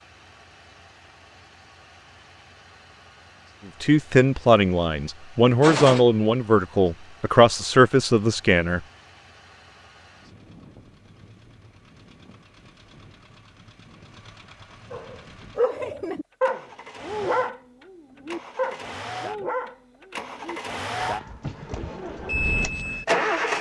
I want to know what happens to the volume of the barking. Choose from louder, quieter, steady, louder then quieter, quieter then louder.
quieter.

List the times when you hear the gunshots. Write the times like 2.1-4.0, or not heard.
5.6-6.0.